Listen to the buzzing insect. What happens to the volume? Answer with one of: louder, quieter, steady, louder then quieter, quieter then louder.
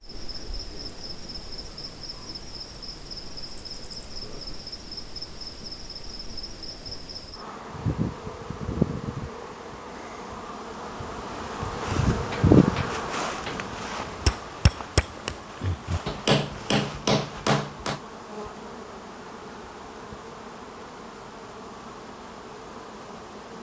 louder then quieter.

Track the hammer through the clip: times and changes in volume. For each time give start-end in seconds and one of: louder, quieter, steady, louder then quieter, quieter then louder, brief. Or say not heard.
12.3-18.0 louder.